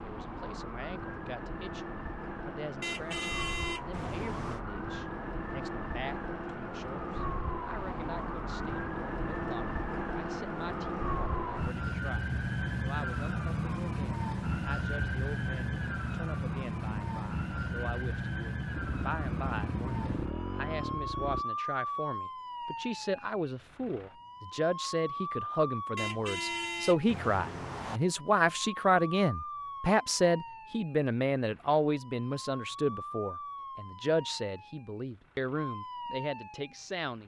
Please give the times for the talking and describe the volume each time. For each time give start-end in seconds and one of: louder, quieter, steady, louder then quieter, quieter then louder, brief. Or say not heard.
0.0-37.2 louder.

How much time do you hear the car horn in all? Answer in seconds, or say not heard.
4 s.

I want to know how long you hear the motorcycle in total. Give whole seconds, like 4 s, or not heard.
3 s.